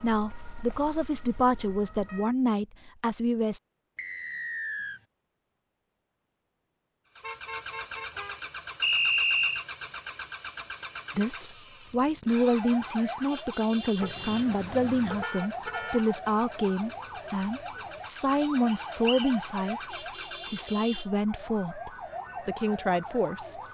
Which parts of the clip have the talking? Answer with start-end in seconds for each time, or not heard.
0.0-3.6, 11.2-19.8, 20.5-23.6.